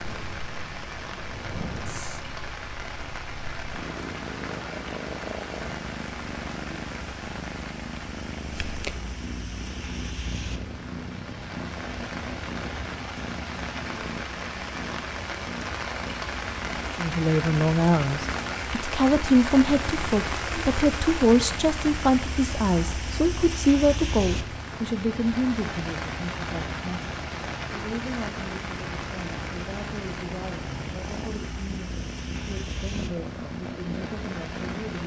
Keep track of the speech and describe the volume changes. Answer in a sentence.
The volume of the speech goes down.